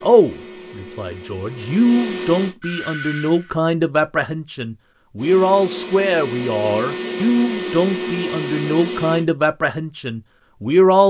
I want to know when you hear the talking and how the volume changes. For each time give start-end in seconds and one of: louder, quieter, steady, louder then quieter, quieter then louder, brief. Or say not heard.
0.0-11.0 steady.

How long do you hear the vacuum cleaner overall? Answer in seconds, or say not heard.
7 s.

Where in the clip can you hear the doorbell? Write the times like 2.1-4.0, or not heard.
2.6-3.5.